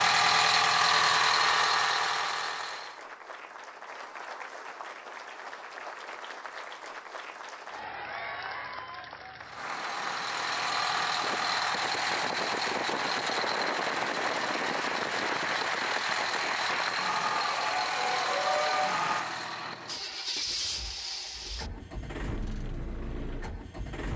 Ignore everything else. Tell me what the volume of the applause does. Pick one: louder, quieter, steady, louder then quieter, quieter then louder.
louder.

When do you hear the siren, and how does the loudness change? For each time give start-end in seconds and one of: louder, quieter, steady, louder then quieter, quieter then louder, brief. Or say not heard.
not heard.